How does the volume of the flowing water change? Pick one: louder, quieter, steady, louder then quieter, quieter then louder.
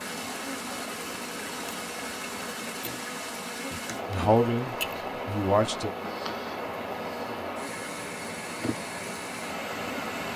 steady.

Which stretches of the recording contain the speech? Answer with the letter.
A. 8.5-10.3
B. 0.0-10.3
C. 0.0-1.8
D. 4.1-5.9
D.